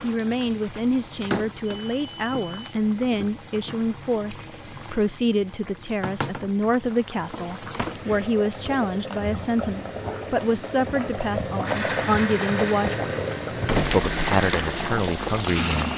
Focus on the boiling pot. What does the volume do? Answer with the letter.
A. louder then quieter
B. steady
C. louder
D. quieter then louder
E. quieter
C.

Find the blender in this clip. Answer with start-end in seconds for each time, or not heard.
11.5-15.9.